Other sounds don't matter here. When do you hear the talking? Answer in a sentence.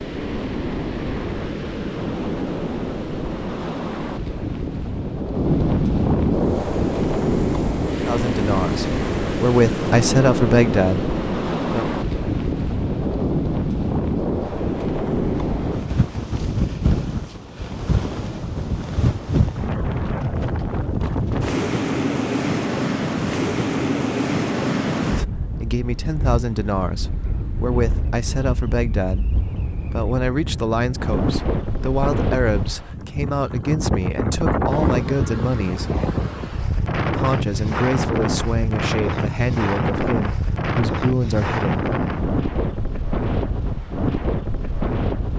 The talking can be heard from 8.0 to 11.9 s, from 25.1 to 36.0 s and from 37.1 to 41.8 s.